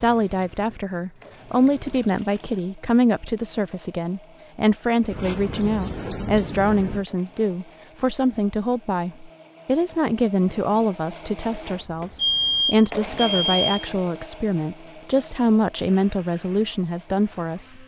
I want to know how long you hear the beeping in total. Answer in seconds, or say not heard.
4 s.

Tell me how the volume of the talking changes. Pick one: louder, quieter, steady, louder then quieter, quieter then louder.
steady.